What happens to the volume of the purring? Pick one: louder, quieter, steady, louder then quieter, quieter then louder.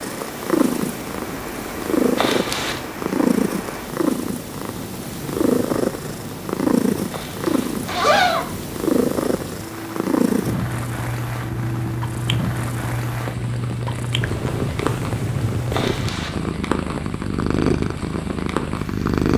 steady.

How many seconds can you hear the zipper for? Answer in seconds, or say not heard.
3 s.